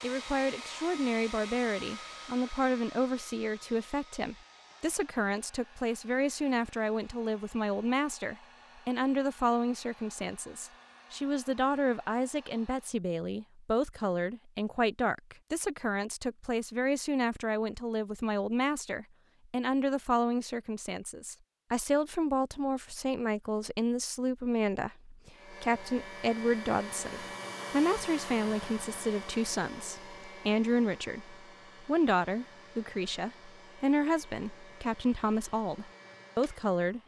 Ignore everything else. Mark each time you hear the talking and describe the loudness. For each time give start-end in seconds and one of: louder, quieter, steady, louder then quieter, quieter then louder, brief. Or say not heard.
0.0-37.0 steady.